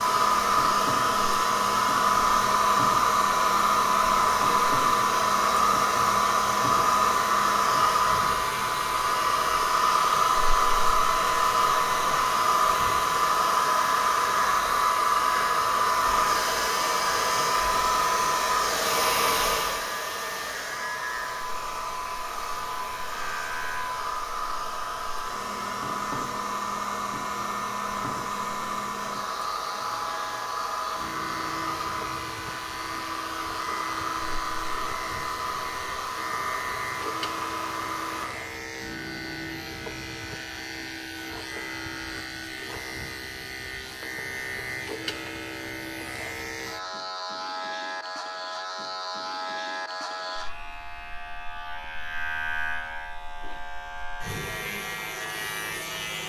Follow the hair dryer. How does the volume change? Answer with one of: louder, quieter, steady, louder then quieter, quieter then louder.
quieter.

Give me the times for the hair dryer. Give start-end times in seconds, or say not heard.
0.0-38.3.